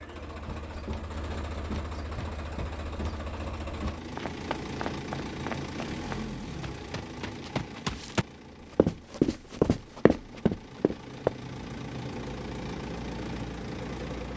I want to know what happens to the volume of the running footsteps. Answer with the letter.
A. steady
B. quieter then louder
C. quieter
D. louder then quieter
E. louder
E.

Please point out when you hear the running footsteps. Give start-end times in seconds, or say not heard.
0.5-11.3.